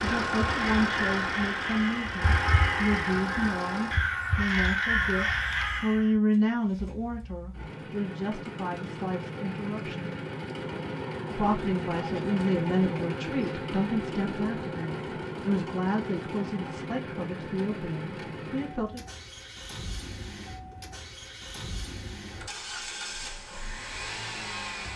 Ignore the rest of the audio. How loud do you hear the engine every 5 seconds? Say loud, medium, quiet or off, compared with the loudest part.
loud, medium, loud, medium, medium.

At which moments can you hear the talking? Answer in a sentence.
You can hear the talking from 0.0 to 10.2 s and from 11.3 to 19.0 s.